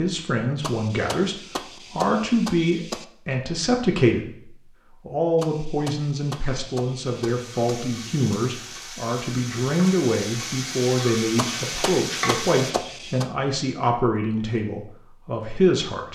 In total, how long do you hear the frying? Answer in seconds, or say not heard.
6 s.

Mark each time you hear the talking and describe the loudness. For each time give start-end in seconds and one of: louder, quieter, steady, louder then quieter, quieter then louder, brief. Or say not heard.
0.0-16.0 steady.